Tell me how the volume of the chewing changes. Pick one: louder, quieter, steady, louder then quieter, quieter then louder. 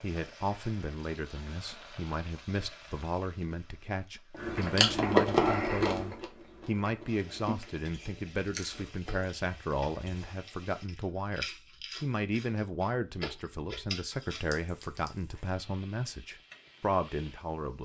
quieter.